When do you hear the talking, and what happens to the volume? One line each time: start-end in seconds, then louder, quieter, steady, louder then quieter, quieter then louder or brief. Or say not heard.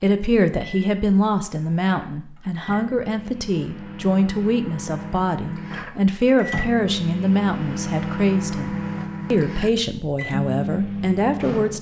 0.0-11.7 steady.